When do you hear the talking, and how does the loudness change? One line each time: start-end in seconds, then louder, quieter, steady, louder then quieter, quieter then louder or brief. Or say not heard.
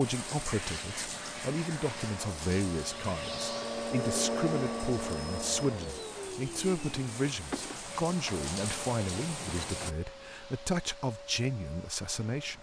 0.0-12.5 steady.